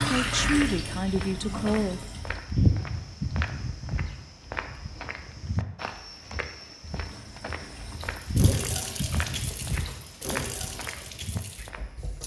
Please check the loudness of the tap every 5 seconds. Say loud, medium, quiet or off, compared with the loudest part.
loud, medium, medium.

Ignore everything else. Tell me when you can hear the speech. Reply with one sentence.
The speech can be heard from 0.1 to 2.0 s.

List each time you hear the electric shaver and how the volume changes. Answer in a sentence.
The electric shaver can't be heard in this clip.